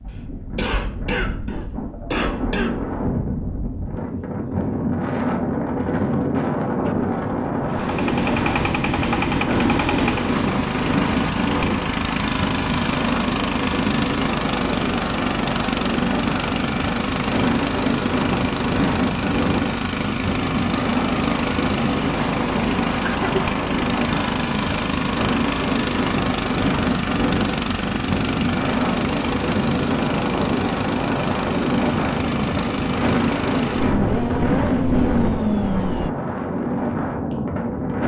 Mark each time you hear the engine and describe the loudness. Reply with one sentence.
The engine can be heard from 6.8 to 36.1 s, at a steady volume.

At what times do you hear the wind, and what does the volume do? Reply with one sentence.
The wind can be heard from 0.0 to 38.0 s, at a steady volume.